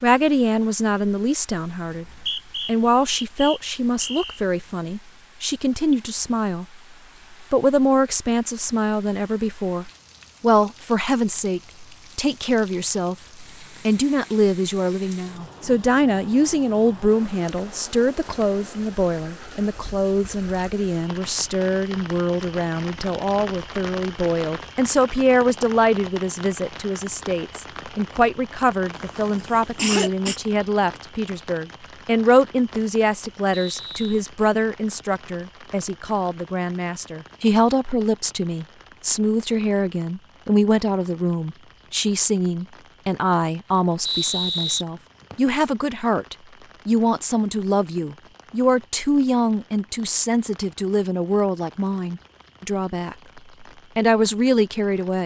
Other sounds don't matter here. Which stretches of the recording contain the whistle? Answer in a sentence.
You can hear the whistle from 1.9 to 4.4 s, from 33.5 to 34.2 s and from 44.0 to 45.5 s.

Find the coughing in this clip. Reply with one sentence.
You can hear the coughing from 28.9 to 30.4 s.